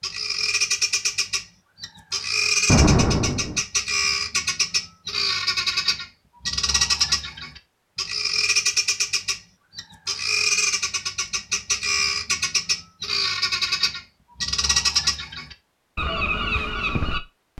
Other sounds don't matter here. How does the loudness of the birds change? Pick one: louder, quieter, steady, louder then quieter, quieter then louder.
steady.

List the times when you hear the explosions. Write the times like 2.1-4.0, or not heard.
2.6-3.6.